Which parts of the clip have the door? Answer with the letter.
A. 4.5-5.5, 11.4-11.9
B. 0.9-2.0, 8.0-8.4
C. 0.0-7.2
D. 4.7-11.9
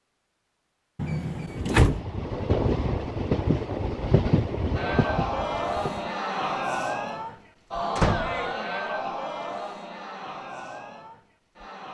B.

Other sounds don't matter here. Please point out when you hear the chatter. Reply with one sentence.
You can hear the chatter from 4.7 to 11.9 s.